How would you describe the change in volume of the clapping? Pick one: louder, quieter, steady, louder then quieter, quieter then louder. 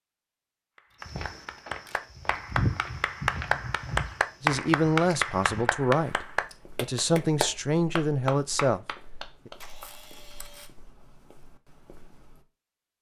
louder then quieter.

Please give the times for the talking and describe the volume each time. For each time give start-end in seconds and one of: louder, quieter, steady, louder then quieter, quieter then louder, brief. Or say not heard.
4.4-9.5 steady.